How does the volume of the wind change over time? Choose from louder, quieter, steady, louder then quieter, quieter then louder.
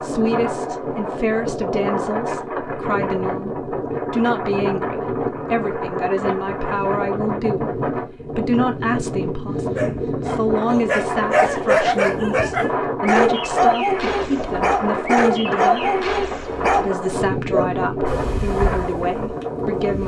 steady.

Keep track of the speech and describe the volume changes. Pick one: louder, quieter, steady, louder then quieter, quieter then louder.
steady.